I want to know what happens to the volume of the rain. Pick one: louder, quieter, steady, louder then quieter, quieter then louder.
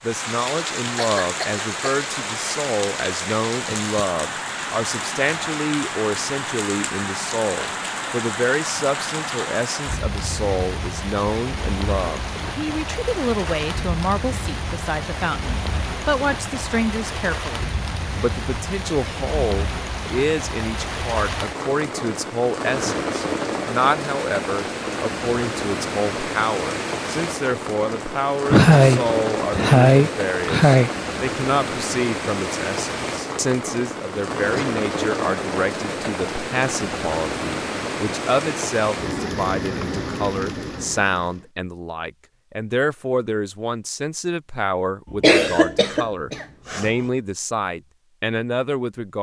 steady.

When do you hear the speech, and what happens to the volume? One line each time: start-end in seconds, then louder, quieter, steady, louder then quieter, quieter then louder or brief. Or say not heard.
0.0-49.1 steady.